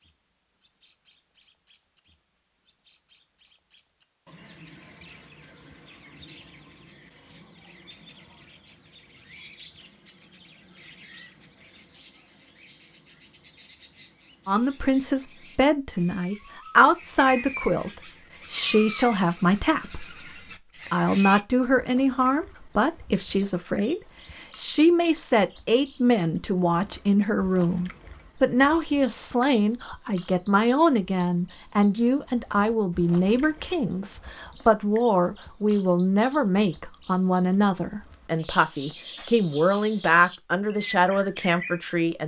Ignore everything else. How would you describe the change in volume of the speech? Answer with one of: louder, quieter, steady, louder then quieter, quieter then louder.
steady.